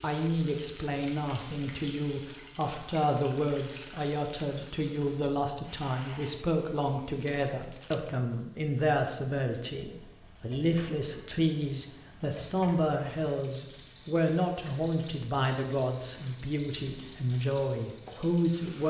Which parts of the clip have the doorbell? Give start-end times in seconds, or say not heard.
not heard.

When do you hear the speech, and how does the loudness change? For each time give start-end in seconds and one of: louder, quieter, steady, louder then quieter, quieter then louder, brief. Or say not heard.
0.0-18.8 steady.